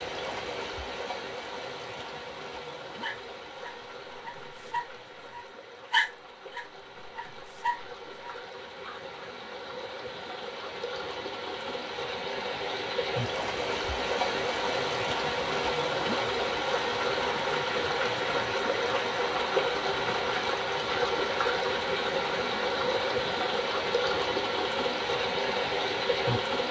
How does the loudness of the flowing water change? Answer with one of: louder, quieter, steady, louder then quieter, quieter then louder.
louder.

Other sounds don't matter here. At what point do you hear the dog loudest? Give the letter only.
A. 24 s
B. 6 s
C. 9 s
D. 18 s
B.